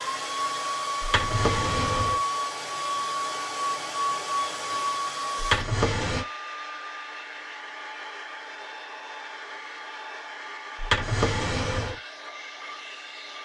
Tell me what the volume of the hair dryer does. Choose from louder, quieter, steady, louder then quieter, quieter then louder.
quieter.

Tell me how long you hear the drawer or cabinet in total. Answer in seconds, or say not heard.
3 s.